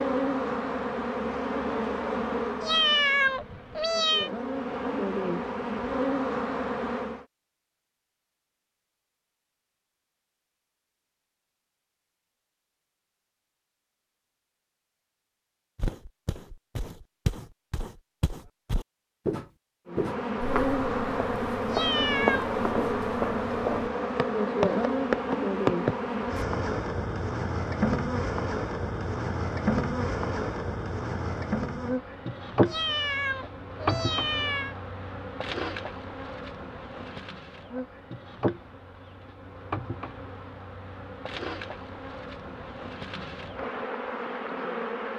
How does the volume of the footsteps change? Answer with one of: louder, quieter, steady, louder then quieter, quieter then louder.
louder.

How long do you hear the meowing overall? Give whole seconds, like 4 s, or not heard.
5 s.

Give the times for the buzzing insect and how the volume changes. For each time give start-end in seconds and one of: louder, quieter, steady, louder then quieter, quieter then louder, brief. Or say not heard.
0.0-7.2 quieter then louder
19.9-45.1 quieter.